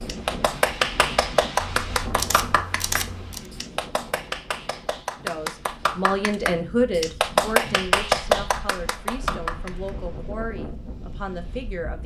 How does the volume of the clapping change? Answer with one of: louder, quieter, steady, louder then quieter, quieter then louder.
quieter then louder.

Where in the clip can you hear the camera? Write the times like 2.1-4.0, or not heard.
1.7-3.5.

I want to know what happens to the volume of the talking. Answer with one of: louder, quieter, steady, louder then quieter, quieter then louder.
quieter.